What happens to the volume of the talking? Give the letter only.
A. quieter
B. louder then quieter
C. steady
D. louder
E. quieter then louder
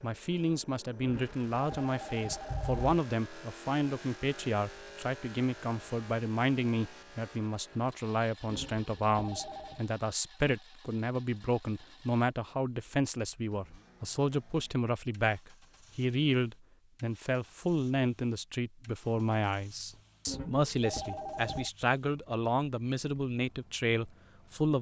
C.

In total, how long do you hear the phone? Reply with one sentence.
The phone can be heard for 5 seconds in total.